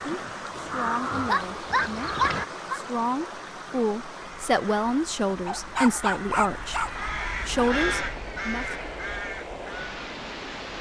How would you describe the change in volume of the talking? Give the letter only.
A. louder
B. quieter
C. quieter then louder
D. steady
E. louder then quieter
A.